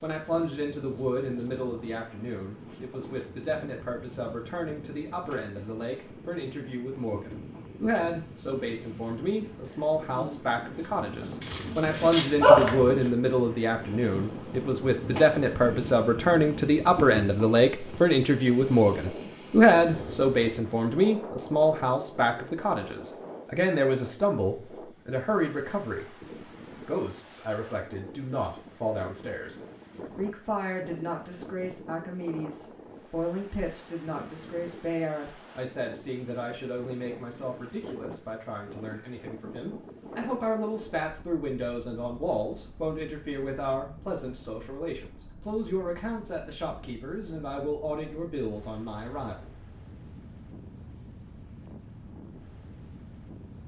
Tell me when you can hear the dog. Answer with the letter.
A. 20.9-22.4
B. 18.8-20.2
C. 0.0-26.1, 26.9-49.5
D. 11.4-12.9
D.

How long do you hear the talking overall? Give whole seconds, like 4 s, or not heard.
49 s.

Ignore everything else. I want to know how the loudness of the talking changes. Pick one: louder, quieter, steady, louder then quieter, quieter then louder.
louder then quieter.